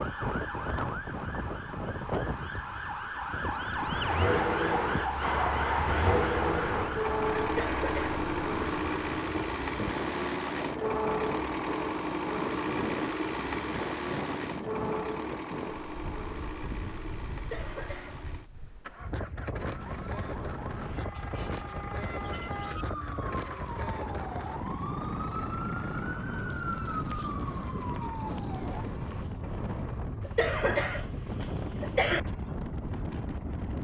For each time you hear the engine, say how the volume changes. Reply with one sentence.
The engine can be heard from 3.8 to 33.6 s, getting quieter.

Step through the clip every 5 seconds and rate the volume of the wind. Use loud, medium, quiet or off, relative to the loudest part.
loud, loud, loud, medium, loud, loud, loud.